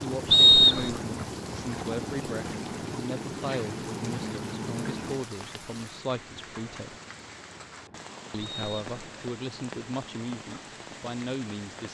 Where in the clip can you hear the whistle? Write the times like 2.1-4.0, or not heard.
0.3-0.9, 8.4-9.2.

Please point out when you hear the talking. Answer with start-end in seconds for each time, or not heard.
0.0-7.0, 8.3-11.8.